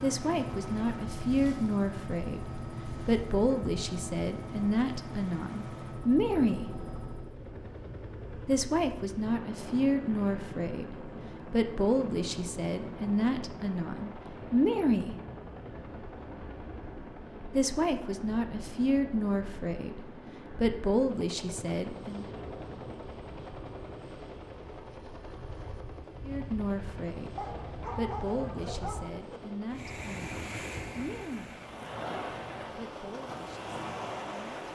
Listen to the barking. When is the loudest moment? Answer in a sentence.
The volume of the barking peaks at 28 seconds.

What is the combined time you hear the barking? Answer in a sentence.
The barking can be heard for 2 seconds in total.